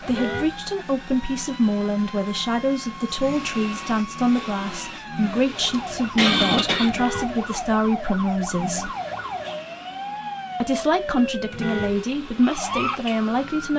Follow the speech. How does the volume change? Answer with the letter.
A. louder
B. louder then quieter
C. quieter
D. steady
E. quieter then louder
D.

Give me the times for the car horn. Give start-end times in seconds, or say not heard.
0.1-0.6, 6.8-7.4, 11.5-12.0.